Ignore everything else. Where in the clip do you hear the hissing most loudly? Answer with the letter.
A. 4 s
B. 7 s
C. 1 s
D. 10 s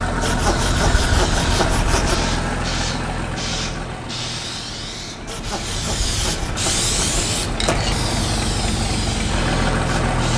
B.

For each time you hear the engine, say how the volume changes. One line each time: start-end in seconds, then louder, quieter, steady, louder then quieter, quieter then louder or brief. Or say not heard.
0.0-10.3 quieter then louder.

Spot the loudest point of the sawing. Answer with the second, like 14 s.
1 s.